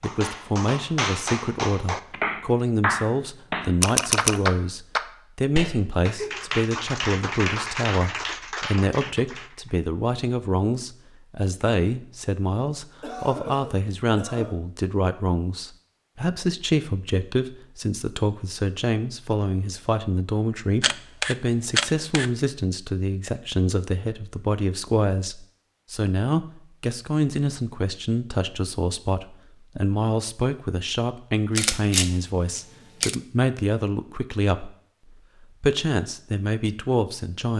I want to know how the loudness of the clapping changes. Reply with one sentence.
The volume of the clapping goes up, then down.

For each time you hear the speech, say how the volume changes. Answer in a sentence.
You can hear the speech from 0.0 to 34.8 s, at a steady volume; and briefly from 35.6 to 37.5 s.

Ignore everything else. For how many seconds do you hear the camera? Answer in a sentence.
You can hear the camera for 4 seconds altogether.